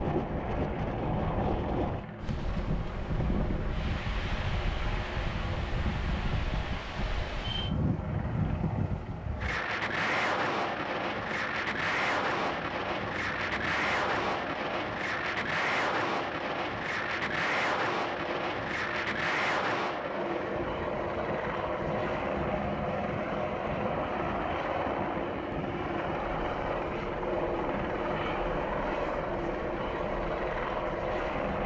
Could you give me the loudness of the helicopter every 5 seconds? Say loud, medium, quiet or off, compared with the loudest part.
medium, medium, medium, medium, loud, loud, loud.